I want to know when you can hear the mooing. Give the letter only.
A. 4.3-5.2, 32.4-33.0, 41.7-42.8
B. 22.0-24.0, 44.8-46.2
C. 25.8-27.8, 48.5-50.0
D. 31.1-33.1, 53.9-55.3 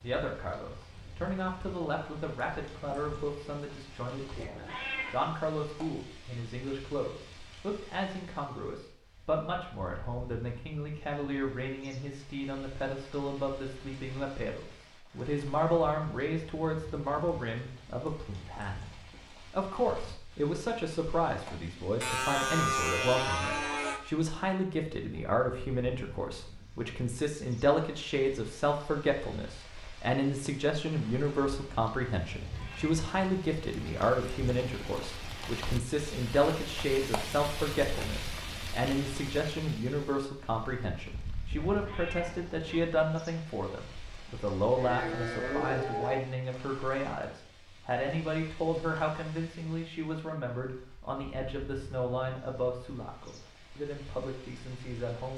B.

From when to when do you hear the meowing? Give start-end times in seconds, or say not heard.
4.3-5.2, 32.4-33.0, 41.7-42.8.